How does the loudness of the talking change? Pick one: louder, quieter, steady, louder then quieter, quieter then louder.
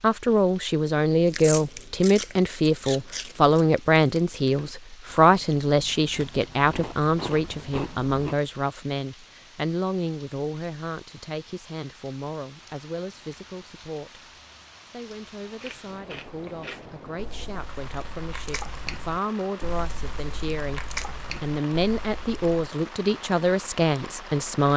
quieter then louder.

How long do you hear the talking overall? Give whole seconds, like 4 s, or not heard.
25 s.